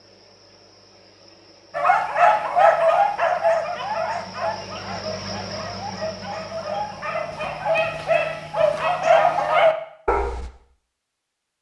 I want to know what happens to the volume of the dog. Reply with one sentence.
The volume of the dog goes down, then up.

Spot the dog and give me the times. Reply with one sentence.
You can hear the dog from 1.8 to 10.5 s.